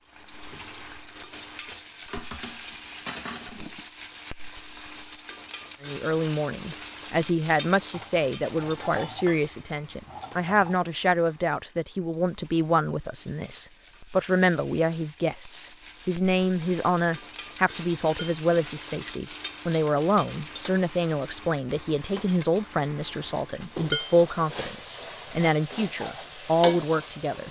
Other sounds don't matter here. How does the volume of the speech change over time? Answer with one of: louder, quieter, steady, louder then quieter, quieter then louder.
steady.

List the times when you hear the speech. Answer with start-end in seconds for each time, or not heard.
5.8-27.4.